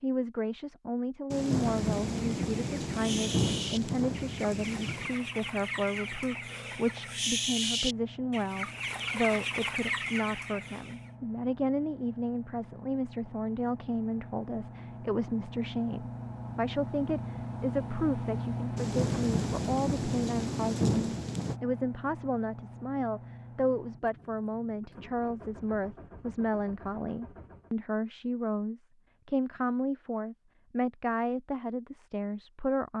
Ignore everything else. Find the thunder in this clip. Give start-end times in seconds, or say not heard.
1.3-5.1, 18.8-21.6.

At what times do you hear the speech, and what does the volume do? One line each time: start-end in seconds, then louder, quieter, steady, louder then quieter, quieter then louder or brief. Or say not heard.
0.0-32.9 steady.